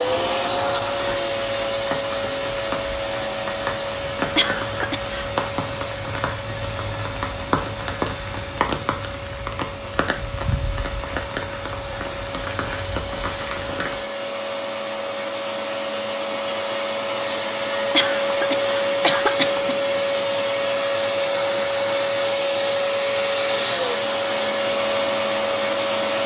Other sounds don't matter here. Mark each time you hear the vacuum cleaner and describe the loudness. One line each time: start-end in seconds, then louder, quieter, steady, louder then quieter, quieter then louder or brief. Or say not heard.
0.0-26.2 quieter then louder.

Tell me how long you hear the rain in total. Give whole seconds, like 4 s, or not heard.
14 s.